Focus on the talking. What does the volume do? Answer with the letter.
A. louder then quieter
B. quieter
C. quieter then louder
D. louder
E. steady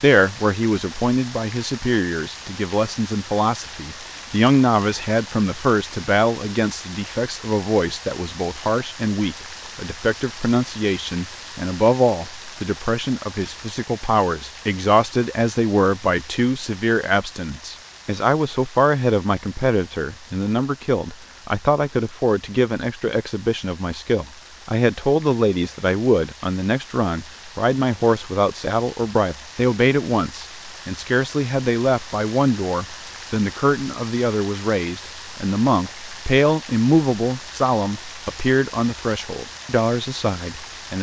E.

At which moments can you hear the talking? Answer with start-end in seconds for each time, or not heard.
0.0-40.9.